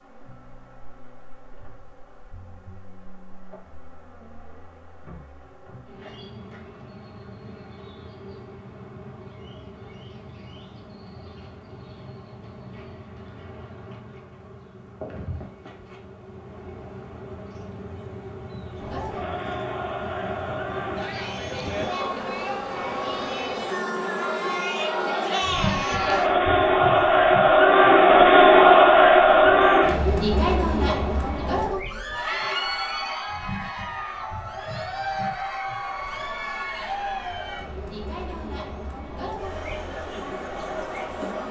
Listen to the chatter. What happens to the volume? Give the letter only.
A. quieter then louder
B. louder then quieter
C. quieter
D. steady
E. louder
B.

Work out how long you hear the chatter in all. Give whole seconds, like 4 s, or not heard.
23 s.